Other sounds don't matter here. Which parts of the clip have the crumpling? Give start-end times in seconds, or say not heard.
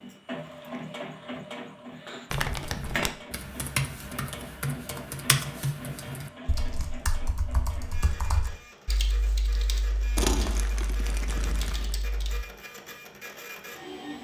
2.3-3.1, 10.2-11.9.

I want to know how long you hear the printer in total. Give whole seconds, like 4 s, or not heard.
14 s.